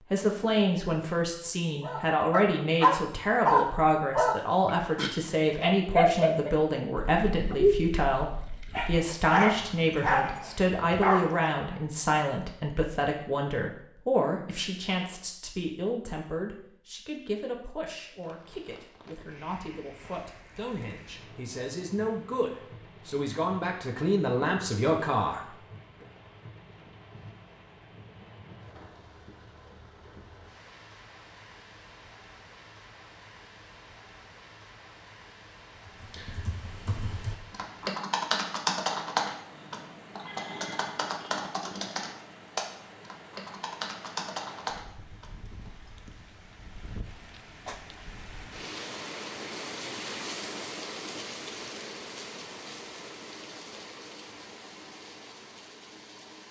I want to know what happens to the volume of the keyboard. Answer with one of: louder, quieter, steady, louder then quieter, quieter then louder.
louder then quieter.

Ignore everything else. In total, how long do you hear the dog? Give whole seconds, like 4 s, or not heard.
10 s.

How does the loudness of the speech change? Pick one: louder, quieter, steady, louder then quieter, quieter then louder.
quieter then louder.